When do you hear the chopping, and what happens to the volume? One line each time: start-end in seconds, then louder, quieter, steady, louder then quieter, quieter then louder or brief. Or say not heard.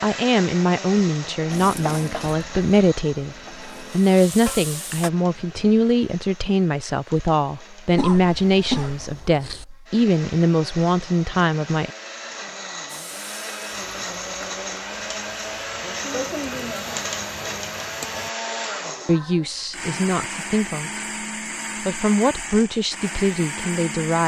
not heard.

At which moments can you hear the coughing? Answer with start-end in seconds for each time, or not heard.
8.0-9.7.